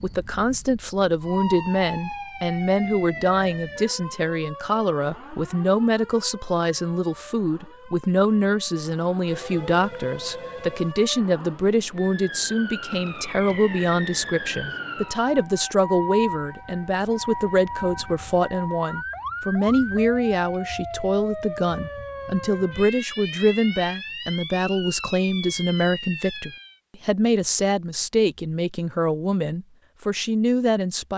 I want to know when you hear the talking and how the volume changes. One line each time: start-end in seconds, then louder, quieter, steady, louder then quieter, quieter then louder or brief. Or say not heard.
0.0-31.1 steady.